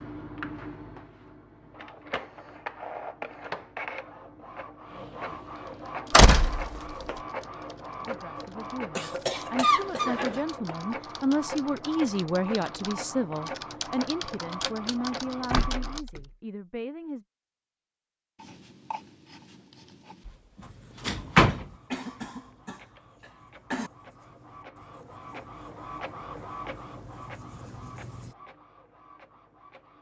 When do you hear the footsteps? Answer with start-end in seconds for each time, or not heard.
not heard.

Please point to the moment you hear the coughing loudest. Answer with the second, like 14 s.
10 s.